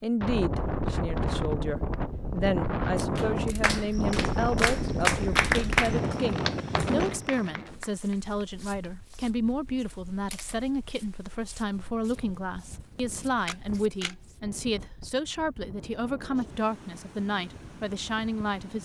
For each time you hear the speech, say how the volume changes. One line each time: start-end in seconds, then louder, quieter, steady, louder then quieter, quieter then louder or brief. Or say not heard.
0.0-18.8 steady.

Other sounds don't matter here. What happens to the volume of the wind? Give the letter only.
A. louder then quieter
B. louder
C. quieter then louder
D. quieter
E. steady
C.